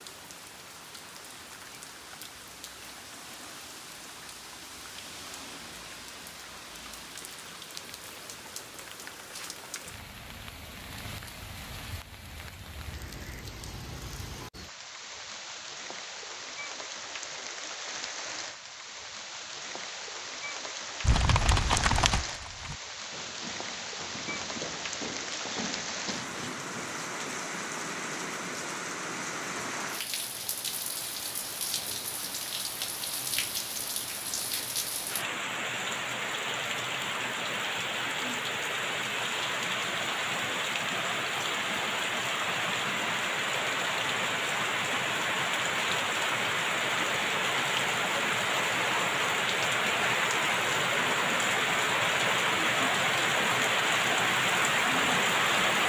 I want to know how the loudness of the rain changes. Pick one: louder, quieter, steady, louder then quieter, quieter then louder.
louder.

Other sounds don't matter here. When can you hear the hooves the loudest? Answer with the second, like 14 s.
22 s.